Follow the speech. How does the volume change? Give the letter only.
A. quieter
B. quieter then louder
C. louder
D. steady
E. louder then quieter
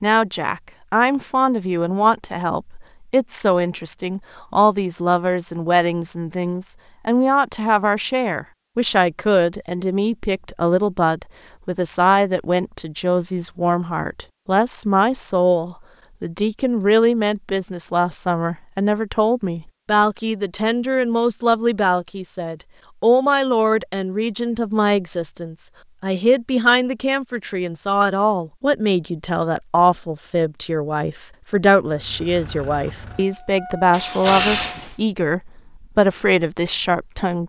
D.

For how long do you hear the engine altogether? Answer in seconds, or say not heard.
3 s.